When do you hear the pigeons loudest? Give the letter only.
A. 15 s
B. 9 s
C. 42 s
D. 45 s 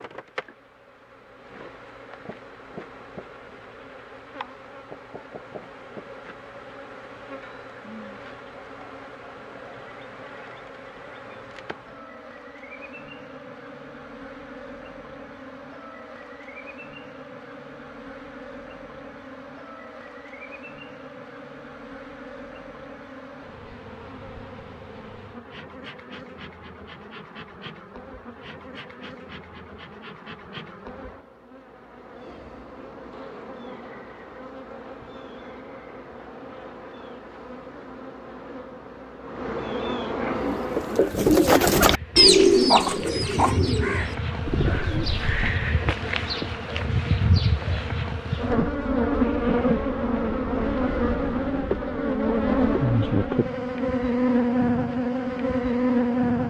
C.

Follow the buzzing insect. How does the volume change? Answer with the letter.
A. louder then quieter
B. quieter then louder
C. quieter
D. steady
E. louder
E.